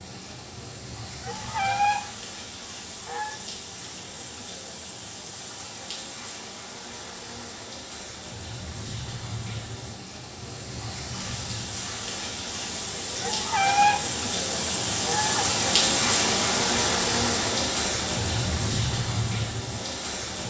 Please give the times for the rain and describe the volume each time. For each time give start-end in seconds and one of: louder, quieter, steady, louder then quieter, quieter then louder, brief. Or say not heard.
0.0-20.4 louder.